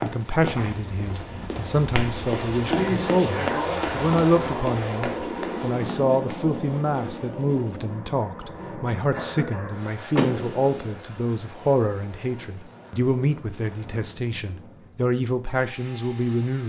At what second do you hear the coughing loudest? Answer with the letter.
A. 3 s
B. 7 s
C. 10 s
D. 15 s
A.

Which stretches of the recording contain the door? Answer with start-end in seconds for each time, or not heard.
10.2-10.9.